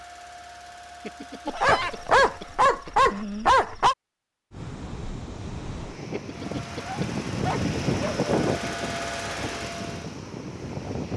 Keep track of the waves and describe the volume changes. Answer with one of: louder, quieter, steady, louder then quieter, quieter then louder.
louder then quieter.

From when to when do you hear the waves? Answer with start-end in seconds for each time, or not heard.
4.5-11.1.